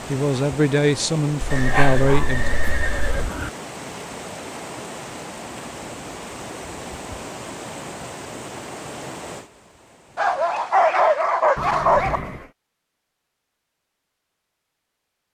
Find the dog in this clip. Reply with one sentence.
The dog can be heard from 1.6 to 3.2 s and from 10.2 to 12.2 s.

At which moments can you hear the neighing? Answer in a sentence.
You can hear the neighing from 1.5 to 3.5 s and from 11.6 to 12.5 s.